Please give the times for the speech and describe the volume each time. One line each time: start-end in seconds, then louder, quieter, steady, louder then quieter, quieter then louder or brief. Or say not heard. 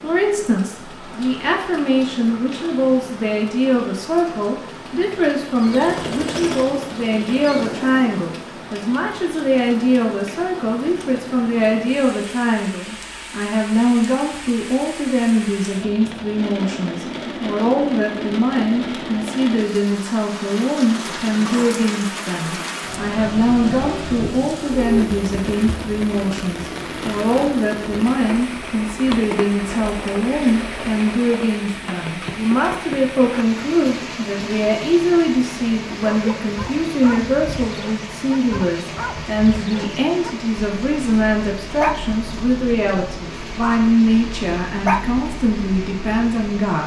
0.0-46.8 steady.